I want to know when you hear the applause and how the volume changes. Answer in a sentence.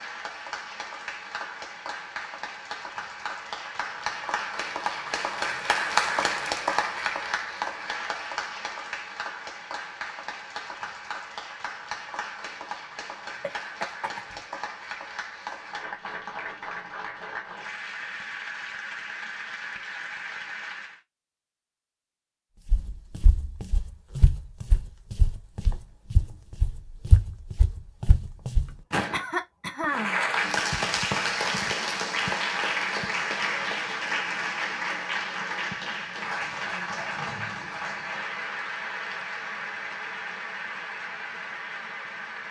You can hear the applause from 0.0 to 21.0 s, getting louder then quieter; and from 29.9 to 42.4 s, getting quieter.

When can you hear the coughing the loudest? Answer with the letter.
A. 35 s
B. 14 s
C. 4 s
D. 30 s
D.